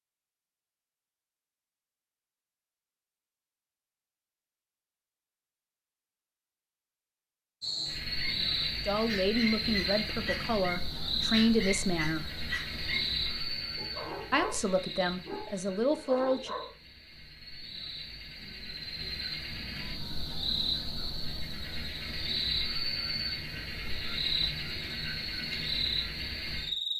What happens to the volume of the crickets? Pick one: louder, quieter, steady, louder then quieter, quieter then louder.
quieter then louder.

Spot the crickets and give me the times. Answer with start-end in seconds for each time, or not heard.
7.6-26.9.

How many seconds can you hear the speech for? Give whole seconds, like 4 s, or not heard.
6 s.